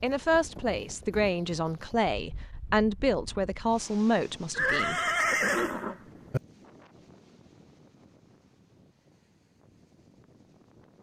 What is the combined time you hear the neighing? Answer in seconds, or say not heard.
2 s.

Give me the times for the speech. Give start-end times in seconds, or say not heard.
0.0-5.0.